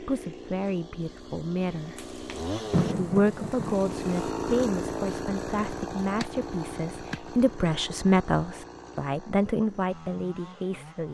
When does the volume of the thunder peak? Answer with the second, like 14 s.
3 s.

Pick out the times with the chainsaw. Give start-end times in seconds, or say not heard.
0.0-11.0.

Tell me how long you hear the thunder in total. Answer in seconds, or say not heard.
2 s.